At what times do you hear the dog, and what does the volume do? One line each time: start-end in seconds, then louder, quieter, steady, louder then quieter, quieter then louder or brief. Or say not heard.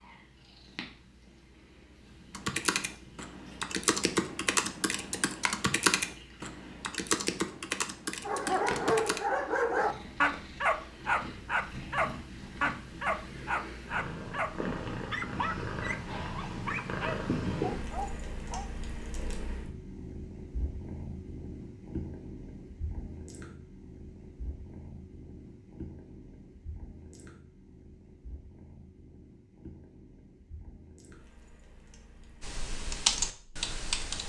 8.2-18.6 quieter.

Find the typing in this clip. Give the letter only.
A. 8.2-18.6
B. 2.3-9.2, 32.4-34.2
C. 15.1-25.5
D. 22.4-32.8
B.